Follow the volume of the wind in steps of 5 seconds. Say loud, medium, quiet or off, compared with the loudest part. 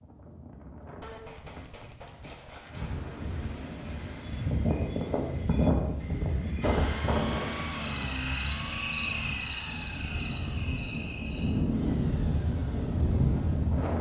medium, loud, loud.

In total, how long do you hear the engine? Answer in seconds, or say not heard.
7 s.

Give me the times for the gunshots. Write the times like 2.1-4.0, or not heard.
1.0-3.0.